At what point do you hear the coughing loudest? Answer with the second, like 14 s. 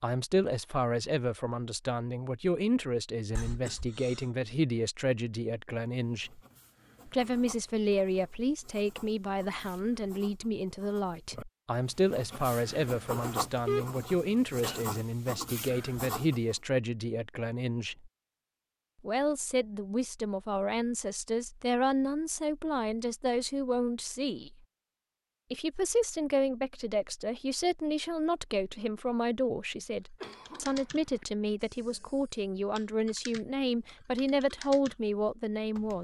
14 s.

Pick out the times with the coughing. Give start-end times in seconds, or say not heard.
3.4-4.2, 13.7-14.8, 30.2-31.2.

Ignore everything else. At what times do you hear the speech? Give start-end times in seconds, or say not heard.
0.0-6.4, 7.0-18.1, 19.0-24.6, 25.5-35.9.